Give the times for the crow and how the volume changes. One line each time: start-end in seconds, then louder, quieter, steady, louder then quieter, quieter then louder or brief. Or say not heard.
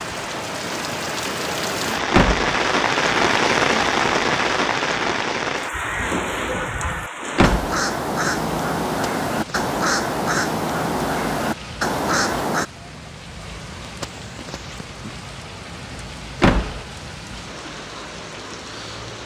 5.7-12.7 louder.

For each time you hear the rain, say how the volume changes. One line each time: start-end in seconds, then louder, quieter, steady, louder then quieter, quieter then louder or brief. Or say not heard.
0.0-19.2 quieter.